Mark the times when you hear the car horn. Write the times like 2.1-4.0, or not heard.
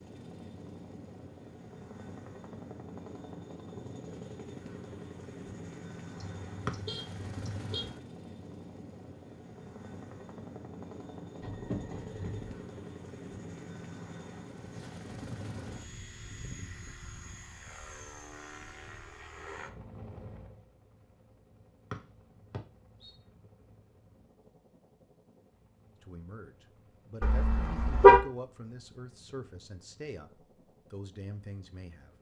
6.2-7.8, 11.4-12.6, 27.2-28.2.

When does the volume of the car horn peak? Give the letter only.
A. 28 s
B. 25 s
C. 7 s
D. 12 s
A.